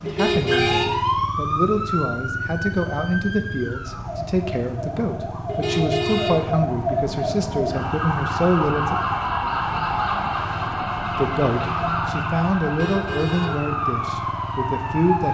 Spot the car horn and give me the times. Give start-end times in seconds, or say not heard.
0.1-0.8, 5.5-6.5, 12.7-13.6.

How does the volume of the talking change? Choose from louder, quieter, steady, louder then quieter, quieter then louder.
steady.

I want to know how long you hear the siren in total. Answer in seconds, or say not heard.
15 s.